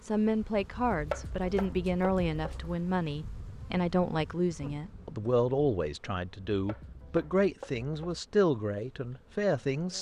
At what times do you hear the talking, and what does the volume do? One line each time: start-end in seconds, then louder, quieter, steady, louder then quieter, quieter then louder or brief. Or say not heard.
0.0-9.9 steady.